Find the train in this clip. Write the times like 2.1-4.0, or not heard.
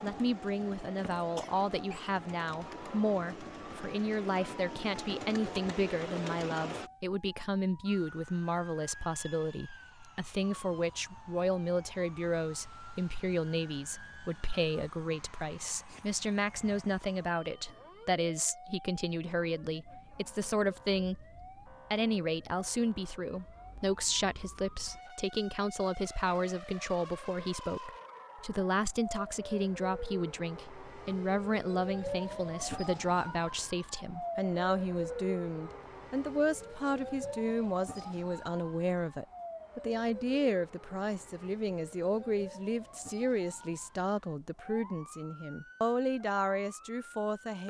0.0-6.9.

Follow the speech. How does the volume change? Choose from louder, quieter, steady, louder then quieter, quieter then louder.
steady.